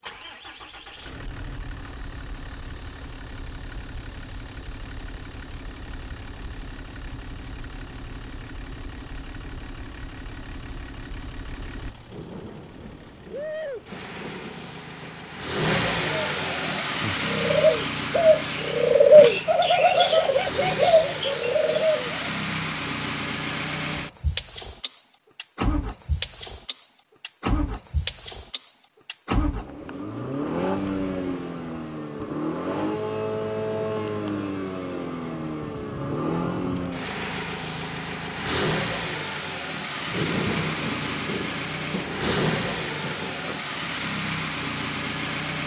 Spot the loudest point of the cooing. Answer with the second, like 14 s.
19 s.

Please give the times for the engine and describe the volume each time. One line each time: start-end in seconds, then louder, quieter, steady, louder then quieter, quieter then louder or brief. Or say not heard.
0.0-45.6 louder.